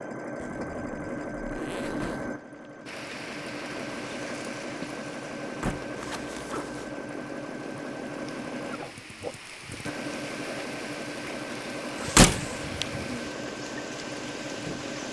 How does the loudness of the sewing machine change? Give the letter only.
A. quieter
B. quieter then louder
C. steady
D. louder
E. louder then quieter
C.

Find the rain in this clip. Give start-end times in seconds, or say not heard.
2.9-15.0.